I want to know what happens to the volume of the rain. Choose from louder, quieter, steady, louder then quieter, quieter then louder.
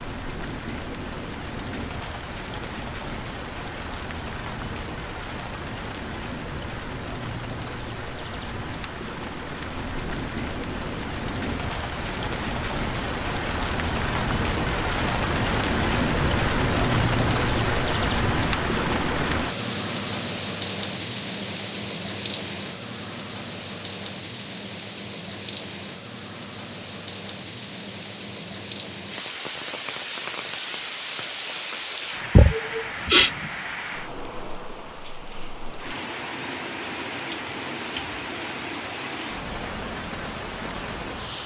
louder then quieter.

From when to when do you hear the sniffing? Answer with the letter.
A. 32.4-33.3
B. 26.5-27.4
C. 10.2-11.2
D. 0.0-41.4
A.